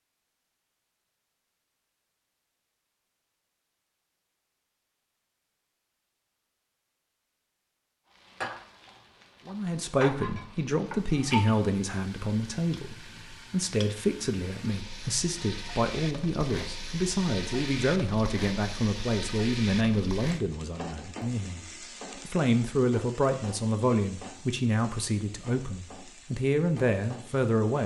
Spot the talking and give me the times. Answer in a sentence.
The talking can be heard from 9.4 to 21.6 s and from 22.2 to 27.8 s.